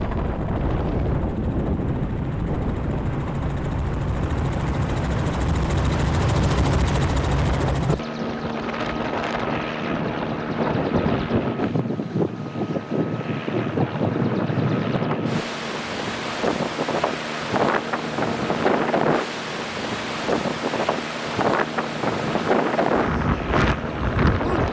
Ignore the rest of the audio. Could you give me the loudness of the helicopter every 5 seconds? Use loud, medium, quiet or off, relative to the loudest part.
medium, loud, medium, medium, medium.